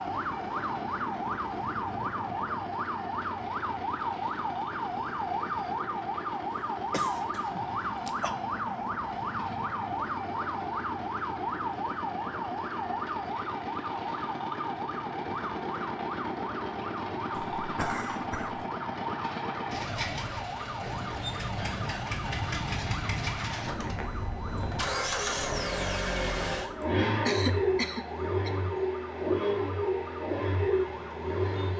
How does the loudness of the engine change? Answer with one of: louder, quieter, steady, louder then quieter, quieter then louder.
louder.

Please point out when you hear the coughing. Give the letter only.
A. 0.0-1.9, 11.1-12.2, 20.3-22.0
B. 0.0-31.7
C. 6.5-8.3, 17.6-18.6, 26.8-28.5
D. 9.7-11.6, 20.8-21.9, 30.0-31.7
C.